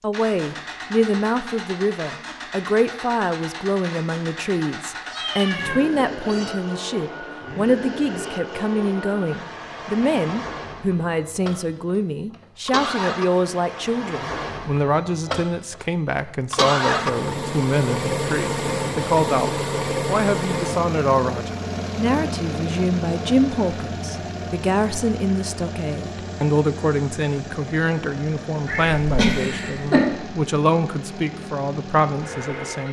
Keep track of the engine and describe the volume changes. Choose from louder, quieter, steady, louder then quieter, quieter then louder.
louder then quieter.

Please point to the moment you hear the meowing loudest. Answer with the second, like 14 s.
29 s.